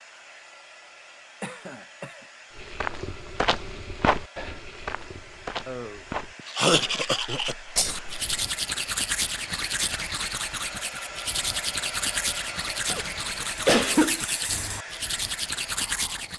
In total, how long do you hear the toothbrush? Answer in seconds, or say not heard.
10 s.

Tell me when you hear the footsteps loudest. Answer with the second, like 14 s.
4 s.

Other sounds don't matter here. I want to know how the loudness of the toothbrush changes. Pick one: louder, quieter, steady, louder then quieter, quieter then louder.
steady.